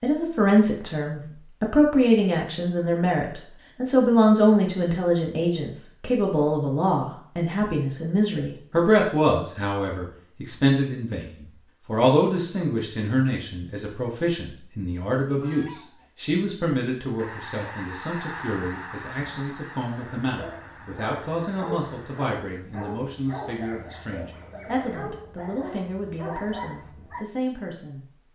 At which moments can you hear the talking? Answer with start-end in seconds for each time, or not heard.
0.0-28.0.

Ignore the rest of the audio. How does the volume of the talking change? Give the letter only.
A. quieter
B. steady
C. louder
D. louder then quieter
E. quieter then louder
A.